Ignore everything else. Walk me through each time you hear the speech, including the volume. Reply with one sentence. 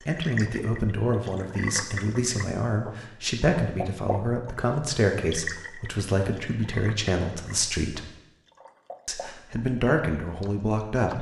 The speech can be heard from 0.1 to 8.0 s, at a steady volume; and briefly from 9.1 to 11.1 s.